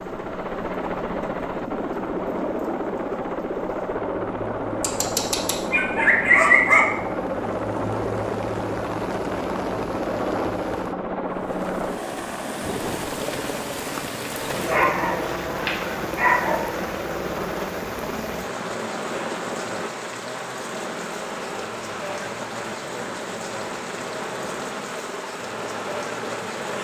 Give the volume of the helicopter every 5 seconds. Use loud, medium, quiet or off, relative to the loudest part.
loud, loud, loud, loud, medium, medium.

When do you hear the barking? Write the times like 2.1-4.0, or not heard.
4.8-6.8, 14.7-16.6.